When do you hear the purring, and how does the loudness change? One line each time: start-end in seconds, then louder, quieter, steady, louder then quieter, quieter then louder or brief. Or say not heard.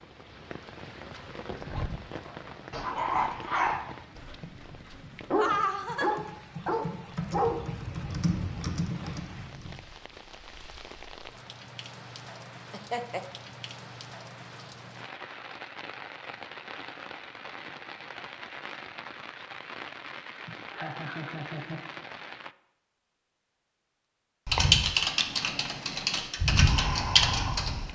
not heard.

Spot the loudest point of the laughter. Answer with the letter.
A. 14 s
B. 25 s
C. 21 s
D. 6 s
D.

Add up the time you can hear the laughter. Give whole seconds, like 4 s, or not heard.
3 s.